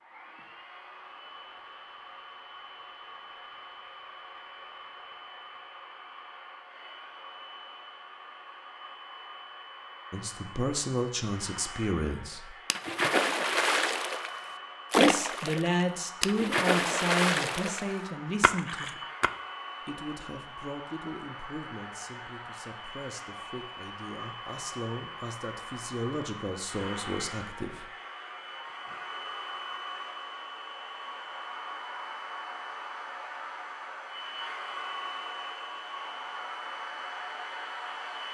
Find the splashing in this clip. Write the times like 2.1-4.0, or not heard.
12.7-19.3.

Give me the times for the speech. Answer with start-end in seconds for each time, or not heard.
10.1-12.6, 14.9-19.0, 19.9-27.9.